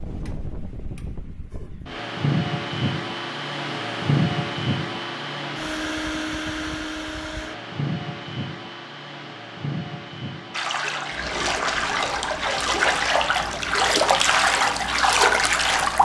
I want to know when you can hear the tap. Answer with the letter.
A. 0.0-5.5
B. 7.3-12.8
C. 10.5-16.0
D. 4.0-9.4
C.